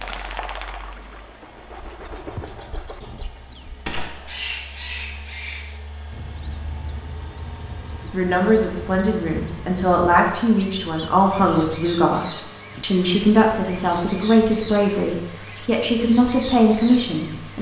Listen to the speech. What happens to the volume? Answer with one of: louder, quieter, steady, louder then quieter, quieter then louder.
steady.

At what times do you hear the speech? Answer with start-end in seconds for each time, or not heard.
8.1-17.5.